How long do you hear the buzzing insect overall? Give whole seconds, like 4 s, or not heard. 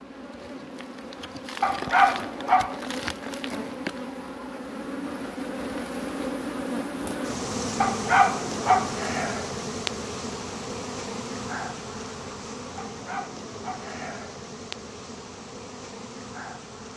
17 s.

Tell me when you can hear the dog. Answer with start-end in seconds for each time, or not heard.
1.6-2.8, 7.8-8.9, 12.8-13.9.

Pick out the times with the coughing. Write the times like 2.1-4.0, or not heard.
not heard.